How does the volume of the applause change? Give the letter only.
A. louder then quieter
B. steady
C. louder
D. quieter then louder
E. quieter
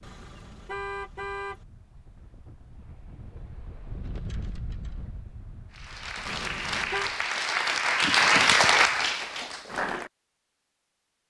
A.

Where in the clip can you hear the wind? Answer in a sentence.
You can hear the wind from 0.0 to 7.3 s.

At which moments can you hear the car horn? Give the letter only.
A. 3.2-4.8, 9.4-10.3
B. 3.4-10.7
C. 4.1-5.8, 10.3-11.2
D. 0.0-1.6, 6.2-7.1
D.